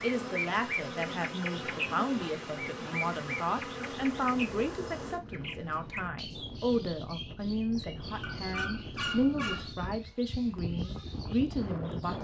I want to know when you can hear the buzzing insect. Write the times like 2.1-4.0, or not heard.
0.0-5.2.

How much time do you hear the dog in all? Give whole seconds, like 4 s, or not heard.
2 s.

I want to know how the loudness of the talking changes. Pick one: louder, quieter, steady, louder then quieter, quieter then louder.
steady.